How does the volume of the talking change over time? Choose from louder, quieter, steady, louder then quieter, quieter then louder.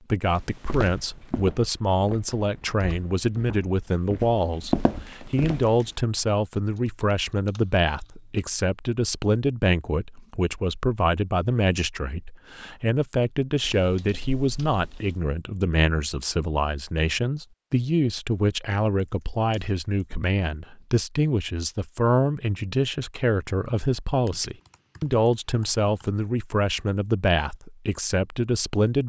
steady.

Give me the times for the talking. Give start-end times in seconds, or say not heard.
0.1-29.0.